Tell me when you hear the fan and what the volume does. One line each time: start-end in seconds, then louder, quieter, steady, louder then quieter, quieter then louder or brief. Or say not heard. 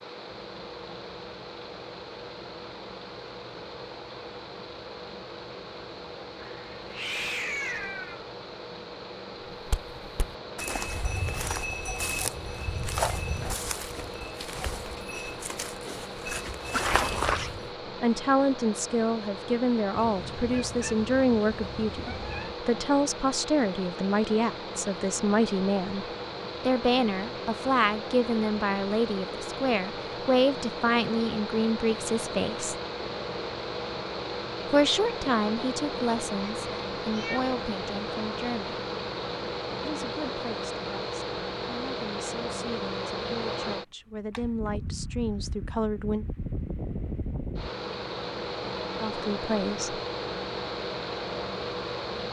0.0-52.2 louder.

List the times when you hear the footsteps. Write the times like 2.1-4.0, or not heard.
9.7-17.7.